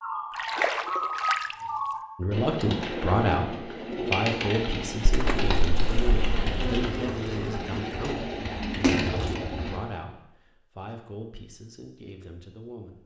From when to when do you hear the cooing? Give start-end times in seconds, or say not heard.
0.0-9.8.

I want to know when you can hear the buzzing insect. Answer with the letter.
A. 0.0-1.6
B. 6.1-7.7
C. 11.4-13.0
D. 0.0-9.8
B.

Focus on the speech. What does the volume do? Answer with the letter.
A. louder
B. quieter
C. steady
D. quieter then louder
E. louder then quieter
B.